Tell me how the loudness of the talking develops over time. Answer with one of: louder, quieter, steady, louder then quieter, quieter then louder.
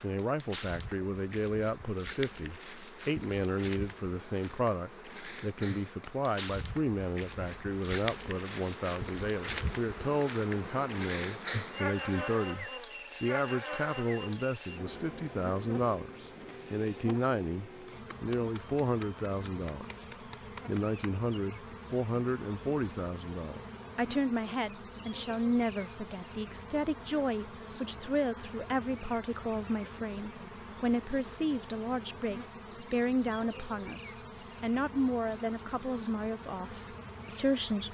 steady.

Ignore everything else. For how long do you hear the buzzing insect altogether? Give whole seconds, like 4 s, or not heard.
38 s.